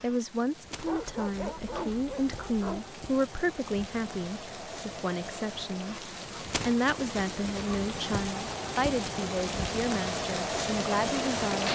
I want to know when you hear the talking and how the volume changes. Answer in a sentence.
The talking can be heard from 0.0 to 11.6 s, at a steady volume.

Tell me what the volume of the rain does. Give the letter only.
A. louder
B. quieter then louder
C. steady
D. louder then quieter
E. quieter
A.